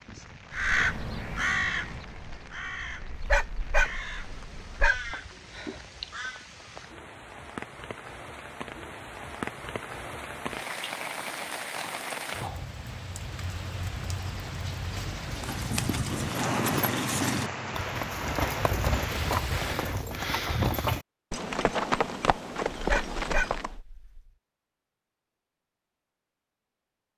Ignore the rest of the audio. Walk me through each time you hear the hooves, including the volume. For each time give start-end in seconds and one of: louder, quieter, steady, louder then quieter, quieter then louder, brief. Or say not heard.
15.3-23.8 steady.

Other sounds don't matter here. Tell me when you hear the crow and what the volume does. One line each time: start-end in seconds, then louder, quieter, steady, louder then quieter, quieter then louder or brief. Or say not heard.
0.5-6.5 quieter.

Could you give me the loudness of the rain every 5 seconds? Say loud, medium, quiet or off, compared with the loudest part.
quiet, medium, loud, loud, off, off.